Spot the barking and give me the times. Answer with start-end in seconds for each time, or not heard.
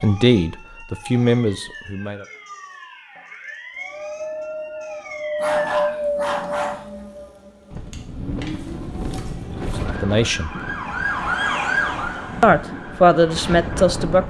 5.4-6.8.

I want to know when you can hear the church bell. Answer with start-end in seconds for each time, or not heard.
not heard.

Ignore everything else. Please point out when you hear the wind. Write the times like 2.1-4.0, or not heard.
3.9-14.2.